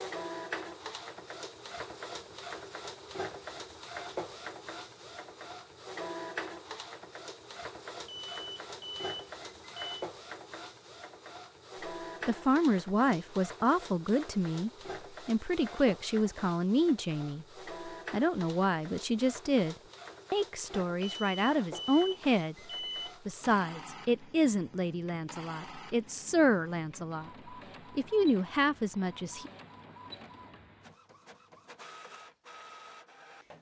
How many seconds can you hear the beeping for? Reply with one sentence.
The beeping can be heard for 4 seconds in total.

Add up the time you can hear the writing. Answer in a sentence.
The writing can't be heard in this clip.